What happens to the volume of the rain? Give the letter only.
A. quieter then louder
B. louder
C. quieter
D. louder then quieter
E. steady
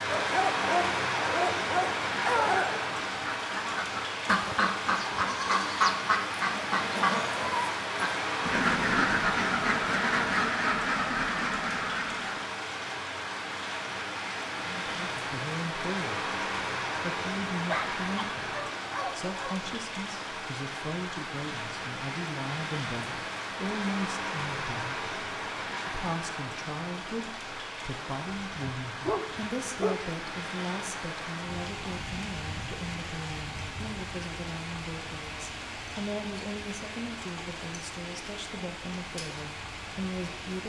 C.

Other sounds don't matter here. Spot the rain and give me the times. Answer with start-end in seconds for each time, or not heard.
0.0-40.6.